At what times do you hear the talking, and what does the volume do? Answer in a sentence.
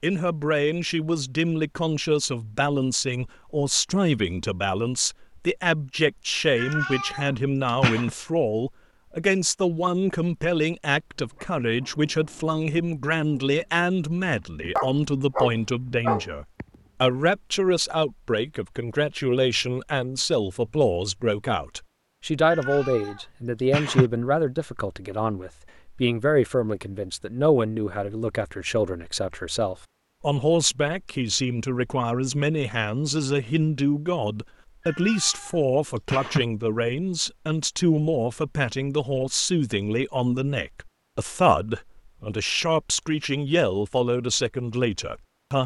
You can hear the talking from 0.0 to 45.6 s, at a steady volume.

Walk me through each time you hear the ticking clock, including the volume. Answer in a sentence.
The ticking clock can't be heard in this clip.